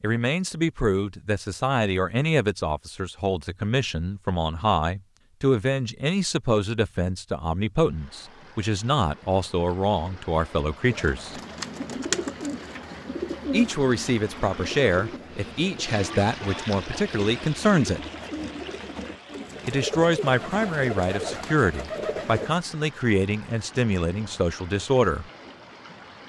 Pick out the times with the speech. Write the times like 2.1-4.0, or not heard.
0.0-11.3, 13.5-18.0, 19.6-25.2.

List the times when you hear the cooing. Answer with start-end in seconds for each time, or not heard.
10.8-22.6.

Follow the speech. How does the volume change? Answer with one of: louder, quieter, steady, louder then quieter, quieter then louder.
steady.